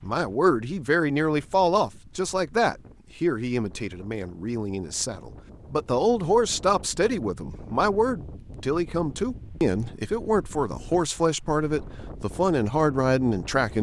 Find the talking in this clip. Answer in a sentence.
You can hear the talking from 0.0 to 13.7 s.